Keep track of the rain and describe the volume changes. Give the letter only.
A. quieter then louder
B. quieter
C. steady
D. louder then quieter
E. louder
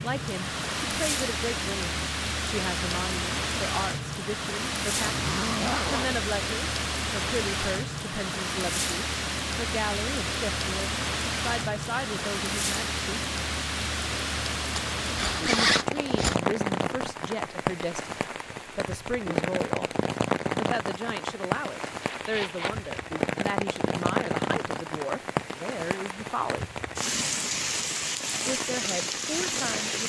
C.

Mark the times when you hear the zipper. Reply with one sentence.
You can hear the zipper from 4.9 to 6.2 s, from 14.8 to 16.4 s and from 22.0 to 23.1 s.